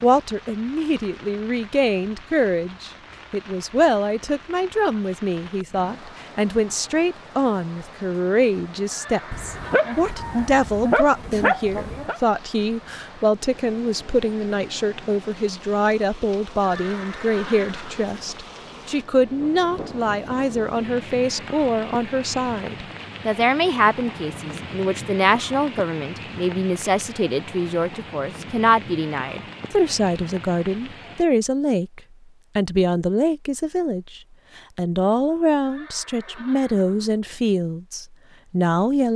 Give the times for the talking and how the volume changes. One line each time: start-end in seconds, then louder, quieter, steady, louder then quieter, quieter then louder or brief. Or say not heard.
0.0-39.1 steady.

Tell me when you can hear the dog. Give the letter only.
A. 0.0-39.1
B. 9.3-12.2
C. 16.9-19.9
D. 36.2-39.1
B.